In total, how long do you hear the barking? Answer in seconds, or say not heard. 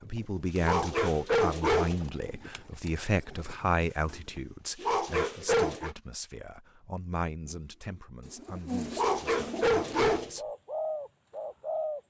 4 s.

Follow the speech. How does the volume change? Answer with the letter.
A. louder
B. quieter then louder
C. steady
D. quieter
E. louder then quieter
D.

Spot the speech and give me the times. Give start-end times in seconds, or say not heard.
0.0-10.5.